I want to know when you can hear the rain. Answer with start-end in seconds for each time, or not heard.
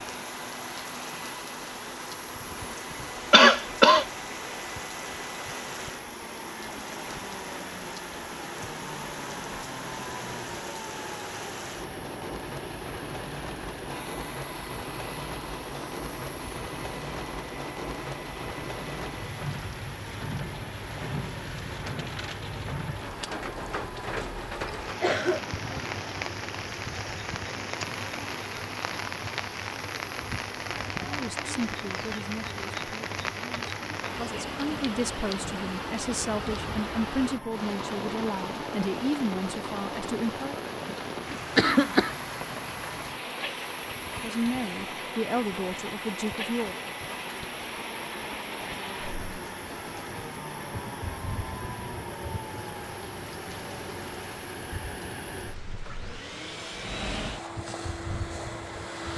0.0-59.1.